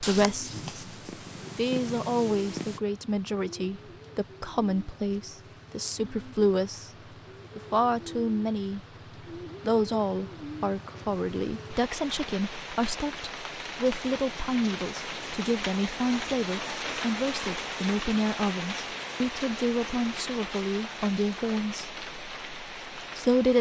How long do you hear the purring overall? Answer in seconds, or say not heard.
3 s.